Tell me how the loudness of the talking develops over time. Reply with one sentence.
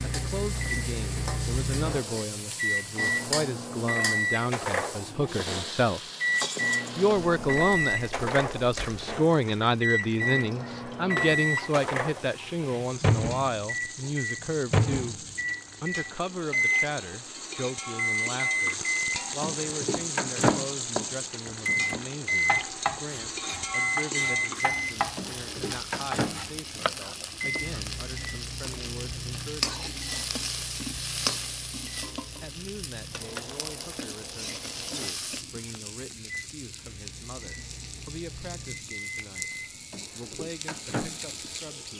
The volume of the talking goes down.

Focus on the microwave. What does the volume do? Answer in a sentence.
The loudness of the microwave goes down.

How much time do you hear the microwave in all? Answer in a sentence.
You can hear the microwave for 42 seconds altogether.